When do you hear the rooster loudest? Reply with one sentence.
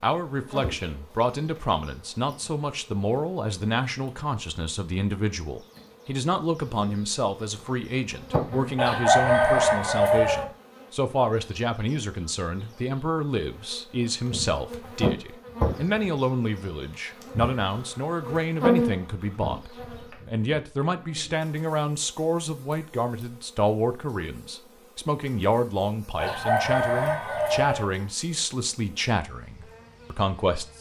The volume of the rooster peaks at 9 seconds.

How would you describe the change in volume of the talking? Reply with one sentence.
The loudness of the talking stays about the same.